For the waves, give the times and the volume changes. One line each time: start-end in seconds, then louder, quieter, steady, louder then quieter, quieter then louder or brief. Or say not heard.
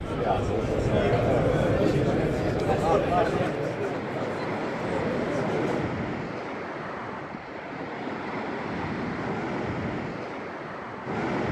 0.0-11.4 steady.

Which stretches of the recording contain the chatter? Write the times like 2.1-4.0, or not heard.
0.0-6.0.